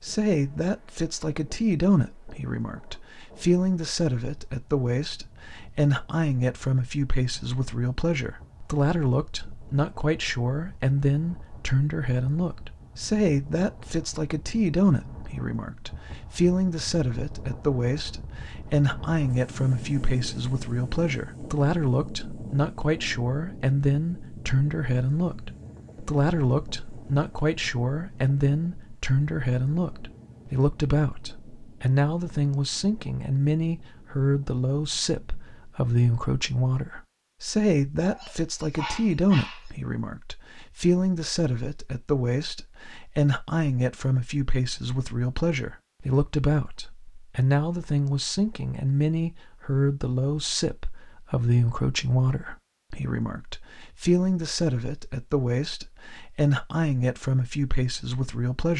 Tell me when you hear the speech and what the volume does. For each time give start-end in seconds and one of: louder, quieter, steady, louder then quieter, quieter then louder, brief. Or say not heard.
0.0-58.7 steady.